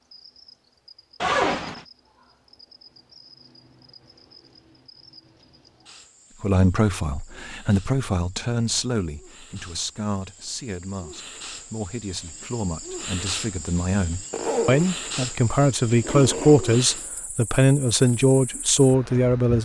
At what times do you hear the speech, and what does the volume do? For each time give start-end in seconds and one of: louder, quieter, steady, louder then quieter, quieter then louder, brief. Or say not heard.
6.4-19.5 quieter then louder.